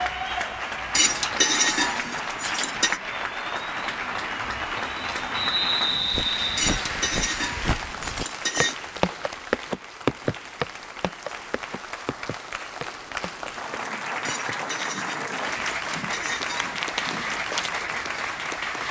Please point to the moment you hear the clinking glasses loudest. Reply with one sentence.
The volume of the clinking glasses peaks at 2 seconds.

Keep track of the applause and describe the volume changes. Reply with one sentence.
The volume of the applause goes down, then up.